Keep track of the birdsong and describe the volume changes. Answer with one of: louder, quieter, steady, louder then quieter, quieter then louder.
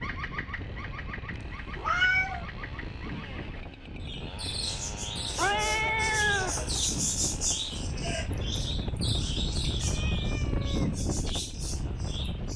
louder then quieter.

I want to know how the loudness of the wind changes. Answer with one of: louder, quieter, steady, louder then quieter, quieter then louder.
louder.